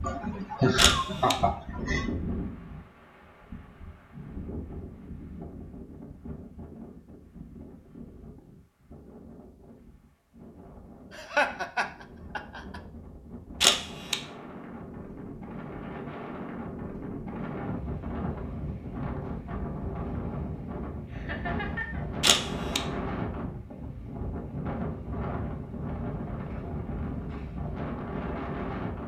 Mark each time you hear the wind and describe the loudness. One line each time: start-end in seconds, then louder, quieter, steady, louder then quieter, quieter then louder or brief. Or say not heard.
0.0-29.0 quieter then louder.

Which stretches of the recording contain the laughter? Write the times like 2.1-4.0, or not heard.
0.0-2.1, 11.1-12.8, 21.1-22.1.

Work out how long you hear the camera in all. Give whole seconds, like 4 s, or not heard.
2 s.